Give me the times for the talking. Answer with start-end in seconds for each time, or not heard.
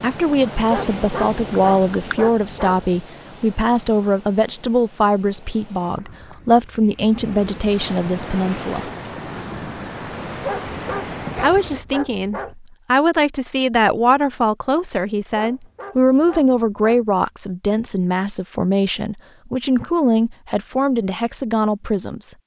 0.0-8.9, 11.4-22.4.